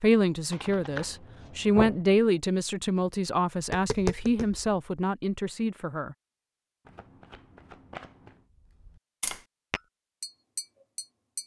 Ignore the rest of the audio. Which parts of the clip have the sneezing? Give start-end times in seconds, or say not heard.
not heard.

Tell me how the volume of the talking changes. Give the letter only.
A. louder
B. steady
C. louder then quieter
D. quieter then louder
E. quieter
C.